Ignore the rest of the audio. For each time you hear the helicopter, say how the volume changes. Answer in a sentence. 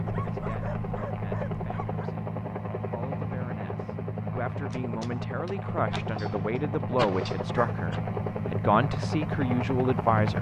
The helicopter can be heard from 0.0 to 10.3 s, at a steady volume.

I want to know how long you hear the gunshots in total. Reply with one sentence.
The gunshots can be heard for 3 seconds in total.